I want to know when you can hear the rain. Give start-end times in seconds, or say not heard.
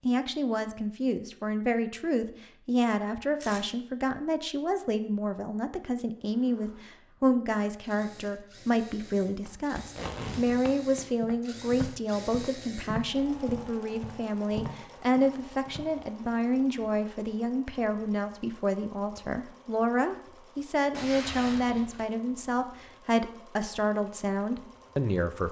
not heard.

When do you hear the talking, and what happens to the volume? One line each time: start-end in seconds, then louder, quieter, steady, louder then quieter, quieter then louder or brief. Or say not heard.
0.0-25.4 steady.